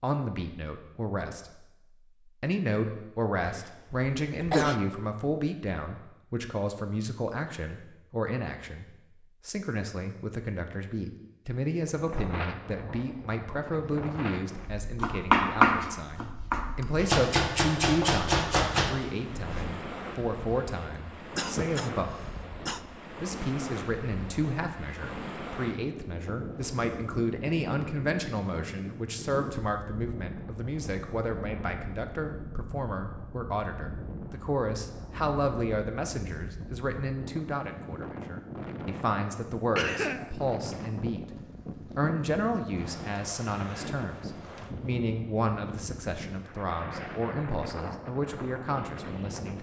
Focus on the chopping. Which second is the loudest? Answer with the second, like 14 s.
15 s.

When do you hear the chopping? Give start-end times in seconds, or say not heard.
15.0-19.6.